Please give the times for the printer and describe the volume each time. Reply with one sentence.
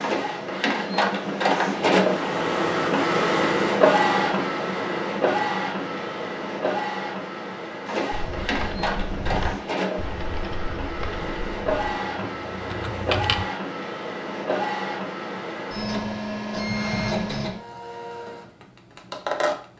The printer can be heard from 0.0 to 19.7 s, getting quieter.